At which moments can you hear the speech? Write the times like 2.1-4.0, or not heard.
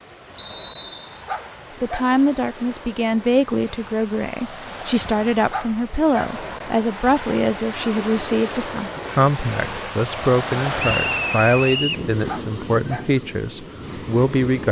1.8-14.6.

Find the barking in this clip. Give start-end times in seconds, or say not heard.
1.2-2.1, 5.5-6.3, 12.2-13.1.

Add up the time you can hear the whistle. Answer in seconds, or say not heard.
2 s.